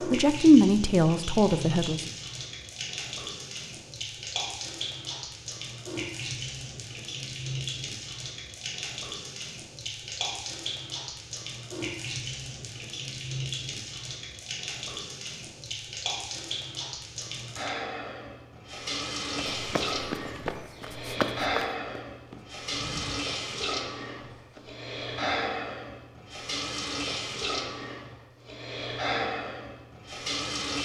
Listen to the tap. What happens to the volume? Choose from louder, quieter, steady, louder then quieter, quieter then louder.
steady.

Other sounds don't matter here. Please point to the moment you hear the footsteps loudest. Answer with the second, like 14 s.
21 s.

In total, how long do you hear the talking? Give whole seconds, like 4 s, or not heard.
2 s.